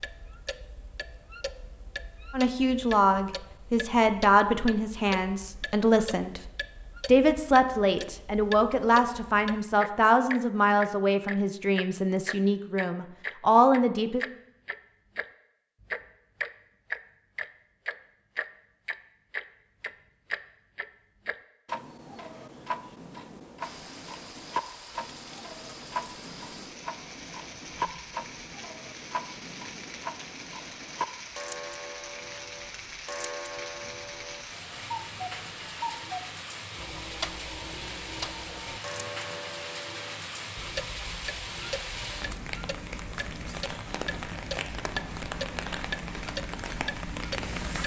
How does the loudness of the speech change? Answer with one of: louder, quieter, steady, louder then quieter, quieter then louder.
steady.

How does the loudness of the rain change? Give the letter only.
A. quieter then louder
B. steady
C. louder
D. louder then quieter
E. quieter
C.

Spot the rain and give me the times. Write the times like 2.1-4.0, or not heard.
23.6-47.8.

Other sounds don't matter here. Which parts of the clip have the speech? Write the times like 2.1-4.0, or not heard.
2.3-6.4, 7.0-14.2.